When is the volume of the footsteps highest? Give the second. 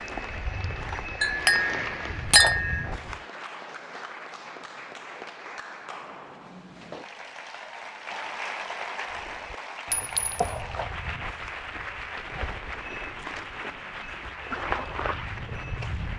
15 s.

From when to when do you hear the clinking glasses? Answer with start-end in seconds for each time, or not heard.
1.2-2.8, 9.9-10.4.